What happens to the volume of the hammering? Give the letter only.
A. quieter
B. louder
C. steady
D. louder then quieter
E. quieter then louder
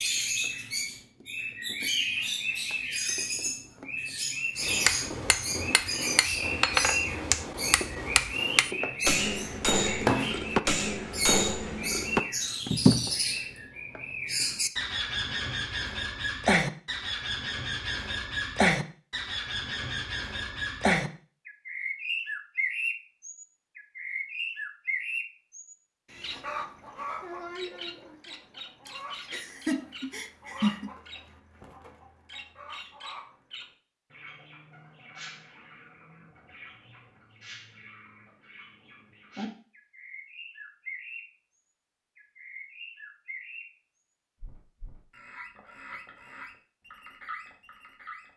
B.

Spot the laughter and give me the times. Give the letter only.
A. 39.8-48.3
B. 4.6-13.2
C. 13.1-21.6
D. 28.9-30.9
D.